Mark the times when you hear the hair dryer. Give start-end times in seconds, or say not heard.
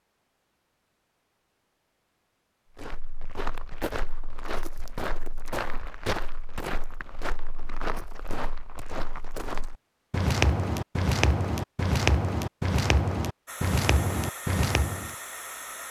13.4-15.8.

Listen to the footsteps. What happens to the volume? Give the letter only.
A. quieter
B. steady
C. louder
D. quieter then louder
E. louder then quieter
C.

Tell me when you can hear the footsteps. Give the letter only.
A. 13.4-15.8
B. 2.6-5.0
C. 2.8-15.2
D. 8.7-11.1
C.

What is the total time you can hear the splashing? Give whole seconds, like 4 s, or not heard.
not heard.